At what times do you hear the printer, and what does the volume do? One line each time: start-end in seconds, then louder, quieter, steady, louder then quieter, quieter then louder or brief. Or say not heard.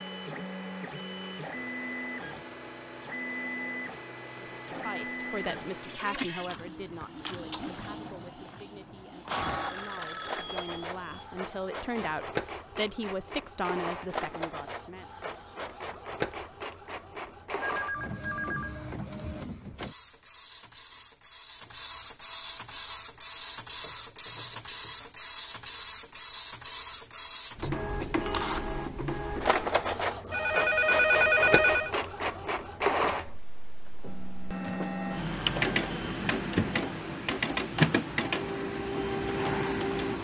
0.0-40.1 louder.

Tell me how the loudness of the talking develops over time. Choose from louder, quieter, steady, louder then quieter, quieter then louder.
quieter then louder.